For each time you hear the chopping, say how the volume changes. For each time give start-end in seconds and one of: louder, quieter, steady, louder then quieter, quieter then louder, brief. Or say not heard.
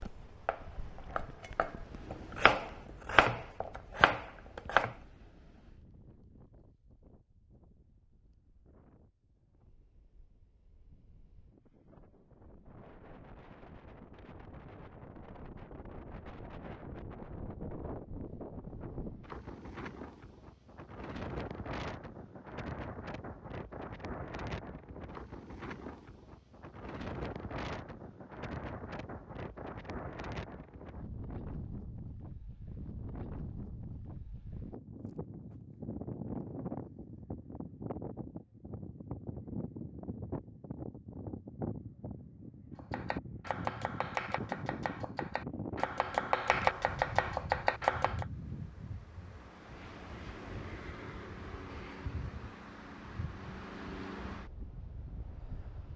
0.0-5.0 louder
42.8-48.2 louder.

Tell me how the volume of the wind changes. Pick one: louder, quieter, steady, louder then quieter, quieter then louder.
louder.